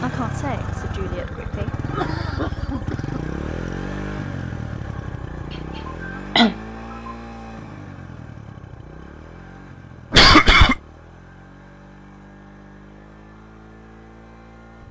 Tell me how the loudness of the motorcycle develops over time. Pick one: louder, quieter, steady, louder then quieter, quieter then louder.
quieter.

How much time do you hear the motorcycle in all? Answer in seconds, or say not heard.
15 s.